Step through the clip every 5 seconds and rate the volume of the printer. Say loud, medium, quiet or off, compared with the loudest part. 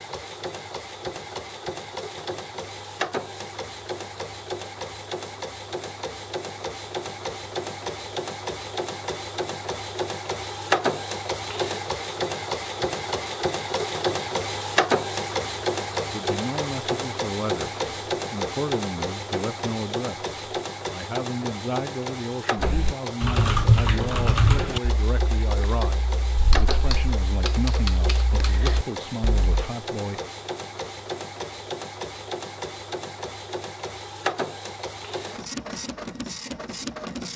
medium, medium, loud, loud, medium, medium, medium, medium.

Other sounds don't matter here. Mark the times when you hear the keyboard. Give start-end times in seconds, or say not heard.
22.6-29.6.